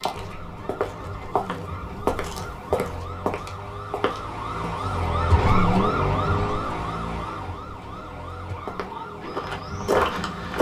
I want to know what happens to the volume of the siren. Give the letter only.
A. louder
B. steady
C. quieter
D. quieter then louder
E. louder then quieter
E.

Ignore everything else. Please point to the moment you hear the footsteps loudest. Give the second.
10 s.